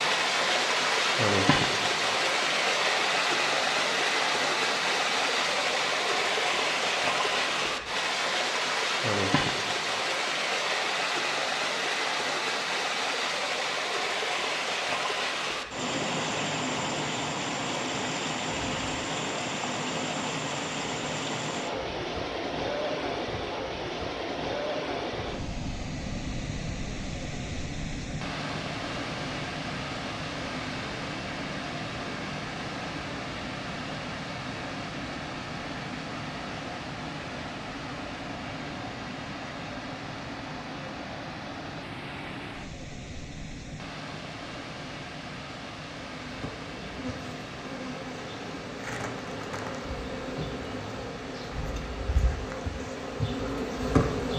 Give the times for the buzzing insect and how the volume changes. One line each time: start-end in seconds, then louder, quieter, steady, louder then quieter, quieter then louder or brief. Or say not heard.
46.2-54.3 louder.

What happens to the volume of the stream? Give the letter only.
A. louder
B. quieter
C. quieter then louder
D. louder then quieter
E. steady
B.